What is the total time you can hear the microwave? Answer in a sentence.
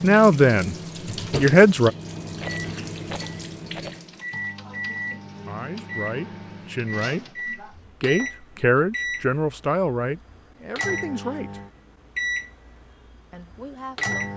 You can hear the microwave for 14 seconds altogether.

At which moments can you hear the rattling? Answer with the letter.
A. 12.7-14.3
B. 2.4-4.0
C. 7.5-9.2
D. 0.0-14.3
B.